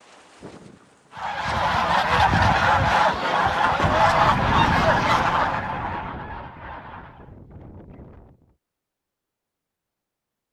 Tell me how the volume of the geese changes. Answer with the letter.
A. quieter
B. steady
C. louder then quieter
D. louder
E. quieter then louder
A.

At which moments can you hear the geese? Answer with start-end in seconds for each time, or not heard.
1.1-7.3.